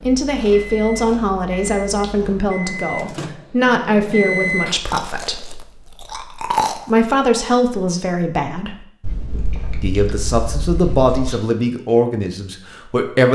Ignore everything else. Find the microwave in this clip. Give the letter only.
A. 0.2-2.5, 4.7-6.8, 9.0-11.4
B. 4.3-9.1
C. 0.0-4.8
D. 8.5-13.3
C.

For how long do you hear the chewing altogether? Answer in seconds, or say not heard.
7 s.